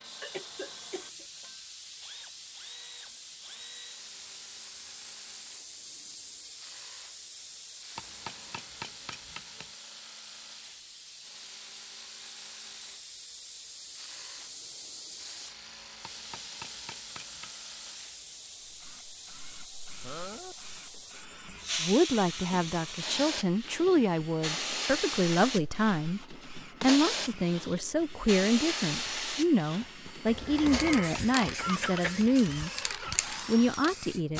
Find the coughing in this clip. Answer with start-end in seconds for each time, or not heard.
0.2-1.4, 20.0-21.1, 30.2-32.2.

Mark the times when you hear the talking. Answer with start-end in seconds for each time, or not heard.
21.8-32.7, 33.5-34.3.